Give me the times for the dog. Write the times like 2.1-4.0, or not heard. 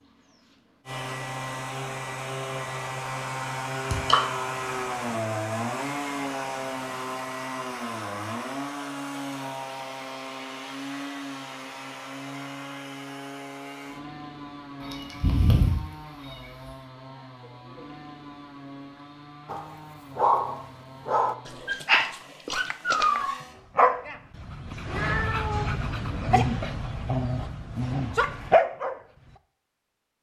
19.4-29.0.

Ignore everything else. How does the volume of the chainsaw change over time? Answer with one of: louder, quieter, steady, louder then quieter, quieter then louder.
quieter.